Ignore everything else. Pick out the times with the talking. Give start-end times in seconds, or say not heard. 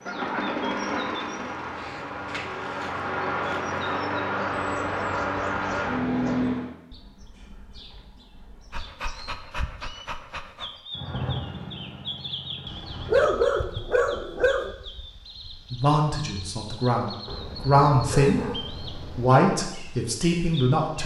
15.7-21.0.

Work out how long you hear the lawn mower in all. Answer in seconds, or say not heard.
9 s.